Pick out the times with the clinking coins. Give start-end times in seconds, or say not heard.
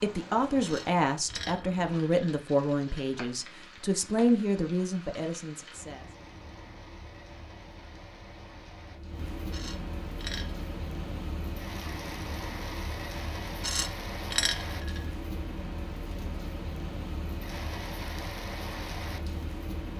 0.6-3.1, 9.5-10.6, 13.6-15.1.